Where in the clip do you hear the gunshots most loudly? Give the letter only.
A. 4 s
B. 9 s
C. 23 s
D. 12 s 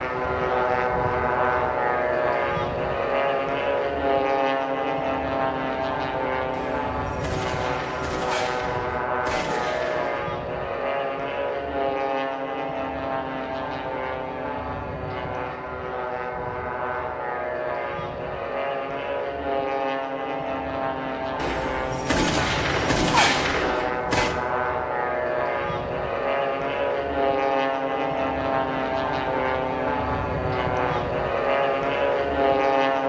C.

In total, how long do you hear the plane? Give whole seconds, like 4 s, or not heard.
33 s.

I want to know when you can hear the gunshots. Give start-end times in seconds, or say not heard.
6.5-10.2, 21.4-24.4.